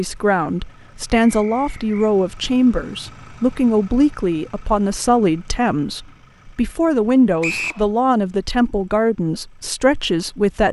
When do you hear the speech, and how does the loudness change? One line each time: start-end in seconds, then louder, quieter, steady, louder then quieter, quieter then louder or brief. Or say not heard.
0.0-10.6 steady.